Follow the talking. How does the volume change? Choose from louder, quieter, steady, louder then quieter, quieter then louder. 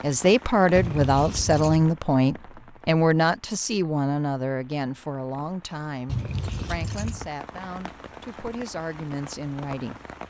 quieter.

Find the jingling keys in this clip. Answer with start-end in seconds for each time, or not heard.
0.8-1.9, 6.0-7.3.